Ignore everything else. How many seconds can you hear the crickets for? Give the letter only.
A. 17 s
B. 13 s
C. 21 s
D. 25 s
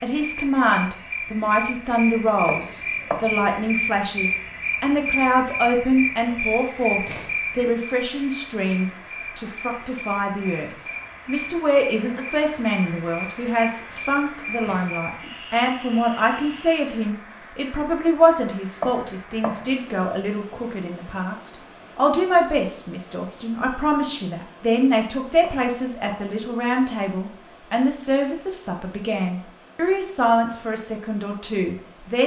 A.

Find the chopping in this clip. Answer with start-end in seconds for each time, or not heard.
2.5-3.4, 18.8-19.8, 25.4-26.4.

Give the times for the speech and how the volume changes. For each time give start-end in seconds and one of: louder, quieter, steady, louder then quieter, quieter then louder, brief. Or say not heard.
0.0-32.2 steady.